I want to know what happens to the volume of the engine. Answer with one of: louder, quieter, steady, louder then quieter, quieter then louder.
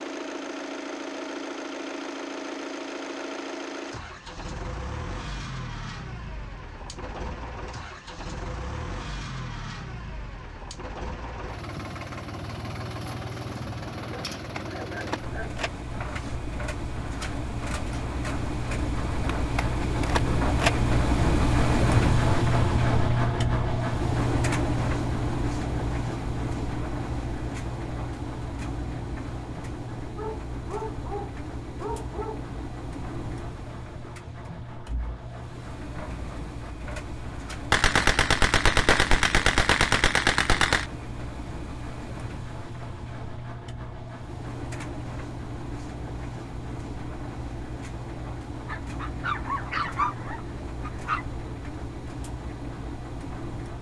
louder then quieter.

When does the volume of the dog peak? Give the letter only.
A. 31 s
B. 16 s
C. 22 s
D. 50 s
D.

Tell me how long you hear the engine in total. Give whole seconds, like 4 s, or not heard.
54 s.